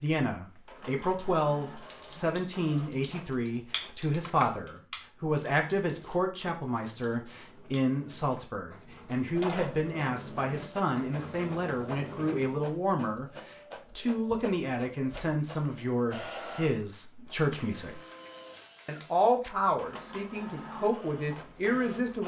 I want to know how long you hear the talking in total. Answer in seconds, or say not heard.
21 s.